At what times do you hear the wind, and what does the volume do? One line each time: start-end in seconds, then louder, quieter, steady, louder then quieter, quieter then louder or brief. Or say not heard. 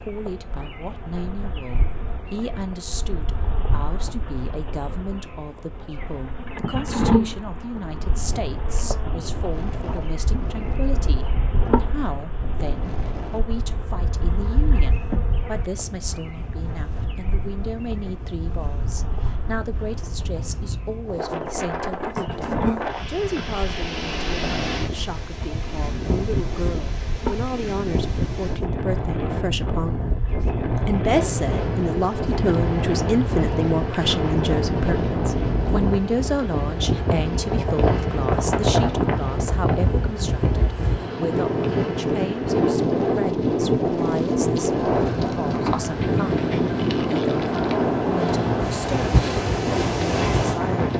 7.7-50.9 louder.